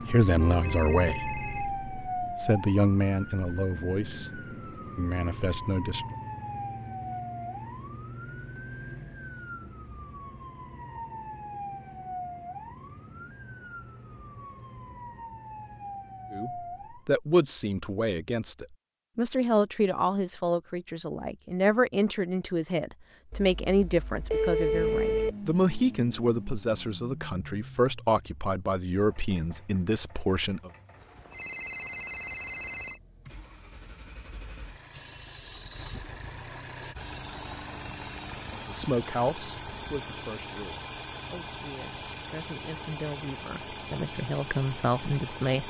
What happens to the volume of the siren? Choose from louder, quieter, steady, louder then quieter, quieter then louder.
quieter.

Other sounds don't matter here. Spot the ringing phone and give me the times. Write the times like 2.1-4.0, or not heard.
0.4-1.7, 23.3-25.4, 31.2-33.0.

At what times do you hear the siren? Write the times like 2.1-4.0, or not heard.
0.0-17.1.